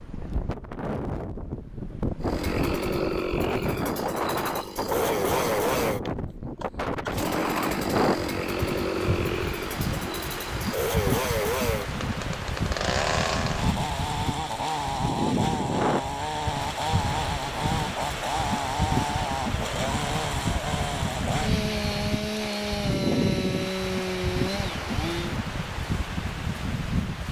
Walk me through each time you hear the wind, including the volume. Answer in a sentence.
You can hear the wind from 0.0 to 27.2 s, at a steady volume.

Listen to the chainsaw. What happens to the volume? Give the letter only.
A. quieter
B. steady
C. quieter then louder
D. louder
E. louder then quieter
B.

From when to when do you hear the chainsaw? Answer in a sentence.
You can hear the chainsaw from 2.2 to 25.4 s.